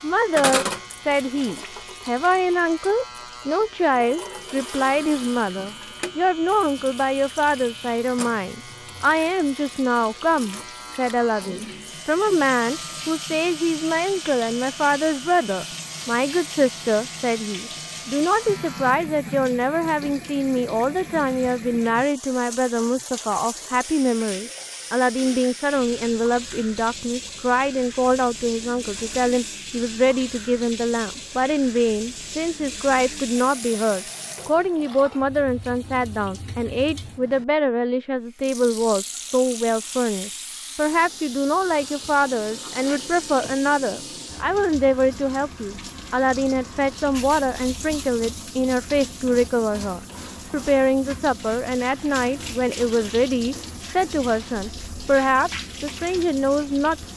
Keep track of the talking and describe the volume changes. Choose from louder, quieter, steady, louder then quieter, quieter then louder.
steady.